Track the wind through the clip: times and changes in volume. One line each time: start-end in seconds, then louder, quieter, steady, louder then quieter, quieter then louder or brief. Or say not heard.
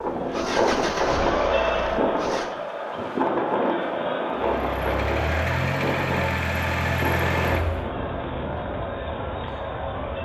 0.0-10.2 quieter.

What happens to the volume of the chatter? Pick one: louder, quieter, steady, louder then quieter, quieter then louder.
quieter.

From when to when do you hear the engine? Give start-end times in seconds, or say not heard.
0.1-2.5, 4.3-7.9.